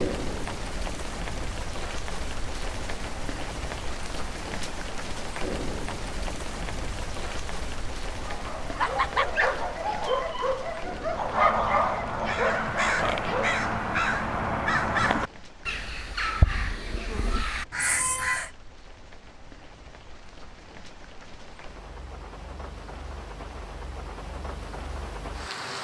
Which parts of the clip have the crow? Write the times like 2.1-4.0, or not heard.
11.1-18.5.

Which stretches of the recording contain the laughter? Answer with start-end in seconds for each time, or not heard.
8.8-9.3.